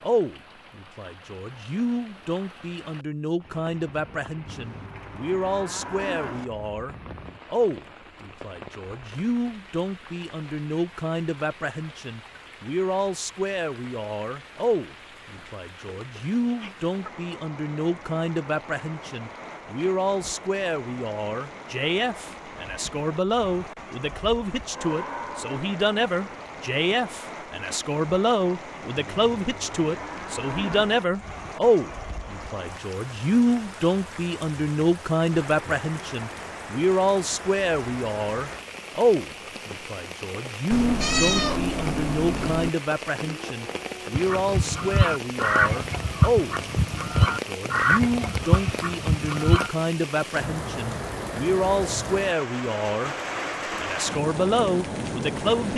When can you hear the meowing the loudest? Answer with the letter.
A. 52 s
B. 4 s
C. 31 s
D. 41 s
D.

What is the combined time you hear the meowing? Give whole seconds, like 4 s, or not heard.
2 s.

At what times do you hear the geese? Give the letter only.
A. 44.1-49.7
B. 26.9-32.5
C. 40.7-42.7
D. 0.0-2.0
A.